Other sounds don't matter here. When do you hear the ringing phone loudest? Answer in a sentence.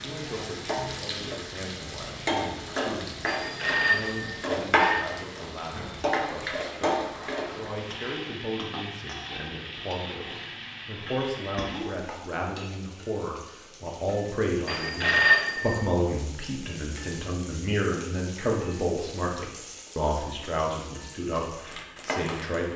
The loudest moment of the ringing phone is at 15 seconds.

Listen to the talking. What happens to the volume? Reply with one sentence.
The volume of the talking goes up.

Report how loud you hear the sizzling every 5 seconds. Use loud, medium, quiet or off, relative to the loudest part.
loud, loud, medium, quiet, medium.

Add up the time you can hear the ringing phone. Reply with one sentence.
The ringing phone can be heard for 3 seconds in total.